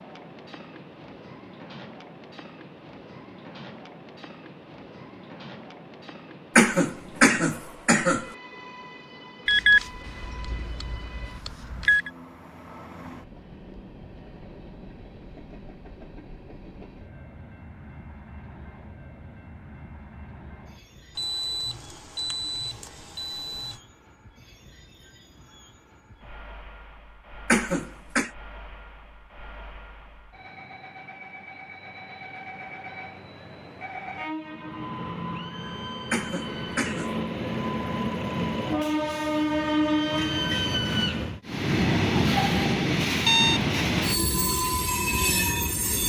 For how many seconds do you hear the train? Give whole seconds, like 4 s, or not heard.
46 s.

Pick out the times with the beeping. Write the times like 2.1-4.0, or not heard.
9.4-12.1, 21.1-23.8, 42.3-43.6.